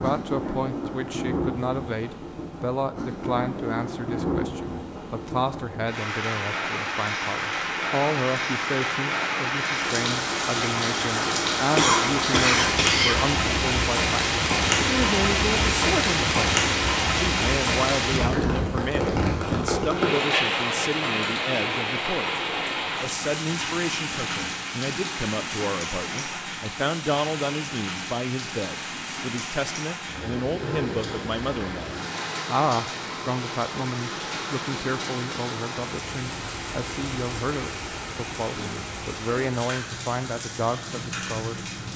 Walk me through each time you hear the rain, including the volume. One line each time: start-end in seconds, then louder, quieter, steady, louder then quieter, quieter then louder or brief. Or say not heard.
0.0-41.9 louder then quieter.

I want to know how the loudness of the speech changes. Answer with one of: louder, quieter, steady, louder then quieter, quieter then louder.
steady.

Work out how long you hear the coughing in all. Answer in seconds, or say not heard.
2 s.